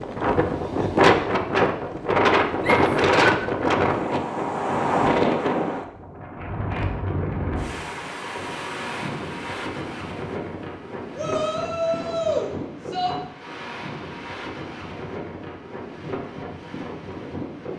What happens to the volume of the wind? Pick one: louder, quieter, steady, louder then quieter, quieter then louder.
quieter.